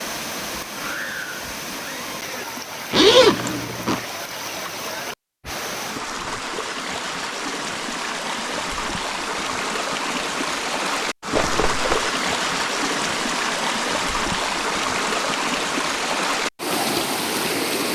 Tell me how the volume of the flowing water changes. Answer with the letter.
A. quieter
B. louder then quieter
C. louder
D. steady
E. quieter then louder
C.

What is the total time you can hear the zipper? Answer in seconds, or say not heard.
2 s.